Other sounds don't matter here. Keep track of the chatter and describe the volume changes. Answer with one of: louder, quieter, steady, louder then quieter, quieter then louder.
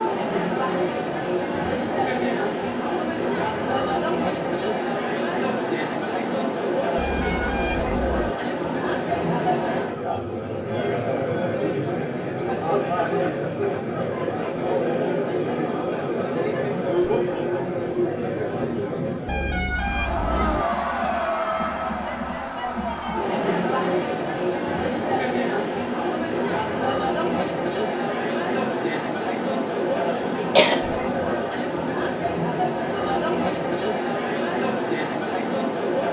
steady.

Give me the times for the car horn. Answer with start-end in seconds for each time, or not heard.
7.0-8.3, 19.2-20.6.